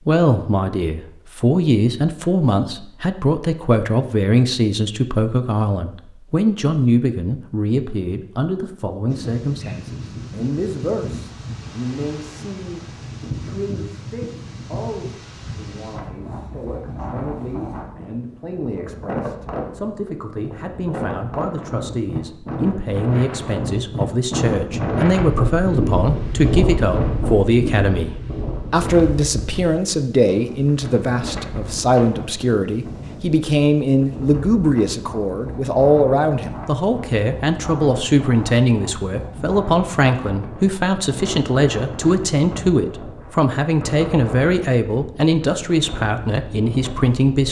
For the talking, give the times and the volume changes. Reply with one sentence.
You can hear the talking from 0.1 to 47.4 s, getting quieter then louder.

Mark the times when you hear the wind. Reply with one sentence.
The wind can be heard from 9.1 to 47.4 s.